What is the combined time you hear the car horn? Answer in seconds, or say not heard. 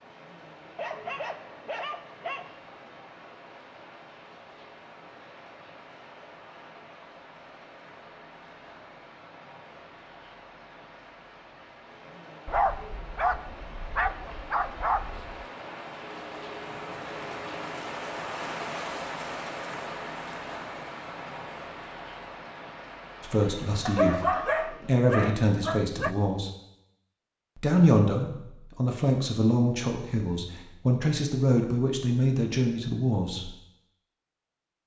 2 s.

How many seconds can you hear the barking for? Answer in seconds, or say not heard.
7 s.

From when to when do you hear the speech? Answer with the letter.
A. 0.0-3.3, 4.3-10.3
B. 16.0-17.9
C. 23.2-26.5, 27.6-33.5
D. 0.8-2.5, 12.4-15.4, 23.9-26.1
C.